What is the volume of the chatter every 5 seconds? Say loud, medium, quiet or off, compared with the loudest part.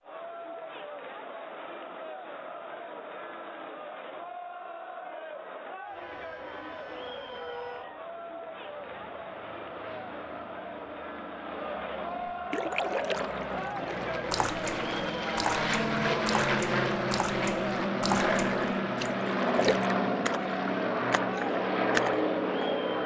medium, medium, loud, loud, loud.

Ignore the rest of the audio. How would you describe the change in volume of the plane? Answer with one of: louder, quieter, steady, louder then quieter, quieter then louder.
louder.